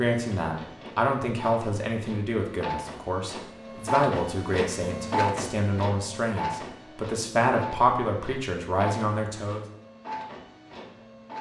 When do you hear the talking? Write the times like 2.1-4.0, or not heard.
0.0-9.7.